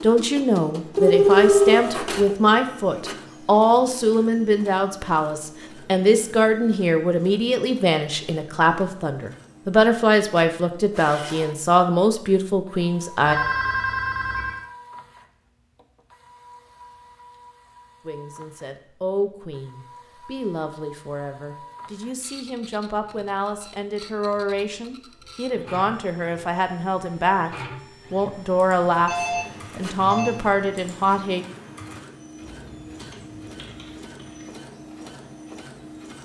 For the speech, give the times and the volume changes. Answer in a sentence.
The speech can be heard from 0.0 to 13.3 s, at a steady volume; and from 18.1 to 31.4 s, getting louder.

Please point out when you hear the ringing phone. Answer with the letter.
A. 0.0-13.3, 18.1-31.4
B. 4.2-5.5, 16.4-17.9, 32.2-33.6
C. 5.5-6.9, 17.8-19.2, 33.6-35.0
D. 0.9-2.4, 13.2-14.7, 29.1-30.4
D.